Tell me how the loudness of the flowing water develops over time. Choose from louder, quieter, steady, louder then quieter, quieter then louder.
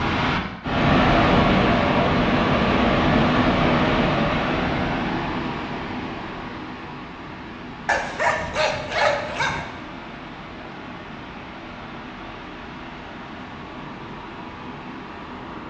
quieter.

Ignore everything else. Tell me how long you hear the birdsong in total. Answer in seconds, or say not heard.
not heard.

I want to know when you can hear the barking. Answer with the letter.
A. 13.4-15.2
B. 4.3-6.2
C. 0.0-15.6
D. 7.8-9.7
D.